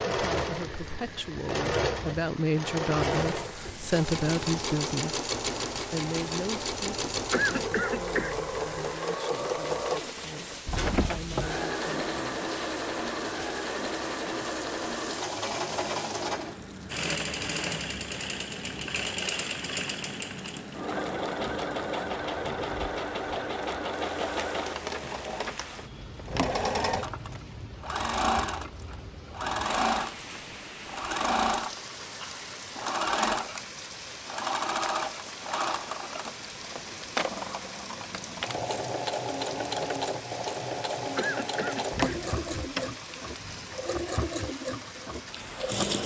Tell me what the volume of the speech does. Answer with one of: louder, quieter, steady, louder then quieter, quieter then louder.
louder then quieter.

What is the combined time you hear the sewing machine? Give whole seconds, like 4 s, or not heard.
46 s.